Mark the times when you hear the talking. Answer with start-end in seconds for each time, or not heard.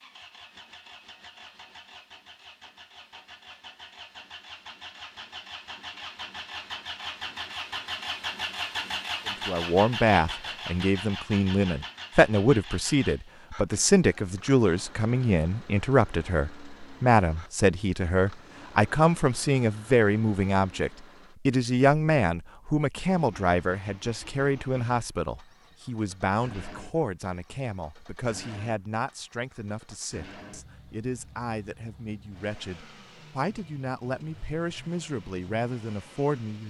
9.4-36.6.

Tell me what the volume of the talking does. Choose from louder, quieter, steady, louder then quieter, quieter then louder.
quieter.